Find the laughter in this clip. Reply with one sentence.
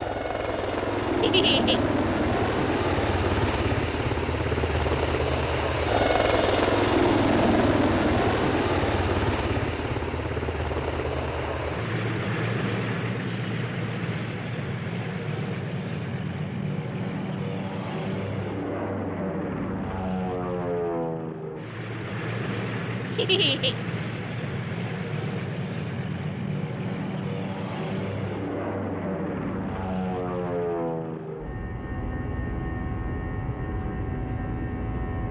You can hear the laughter from 1.2 to 1.8 s and from 23.1 to 23.8 s.